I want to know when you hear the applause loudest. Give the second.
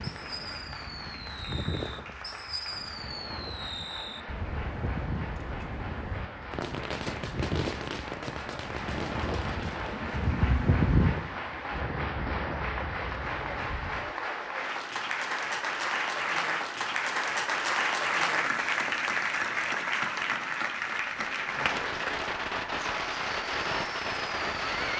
18 s.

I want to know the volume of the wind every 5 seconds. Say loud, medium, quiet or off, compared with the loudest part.
medium, medium, loud, off, off.